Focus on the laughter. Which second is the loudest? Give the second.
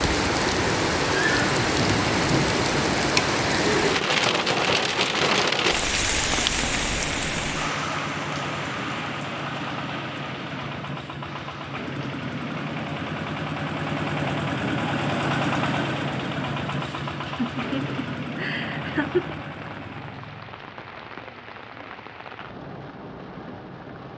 19 s.